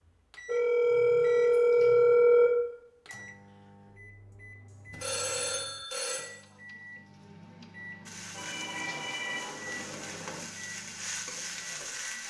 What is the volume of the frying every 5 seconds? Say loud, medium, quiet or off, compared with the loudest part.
off, medium, loud.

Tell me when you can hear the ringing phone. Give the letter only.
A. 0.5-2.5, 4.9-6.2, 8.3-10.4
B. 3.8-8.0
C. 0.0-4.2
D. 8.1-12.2
A.